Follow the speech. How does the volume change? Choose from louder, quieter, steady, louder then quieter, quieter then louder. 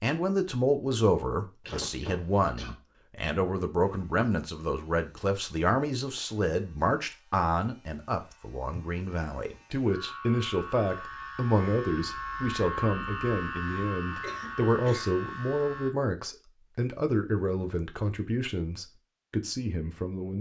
steady.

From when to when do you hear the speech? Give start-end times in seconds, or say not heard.
0.0-20.3.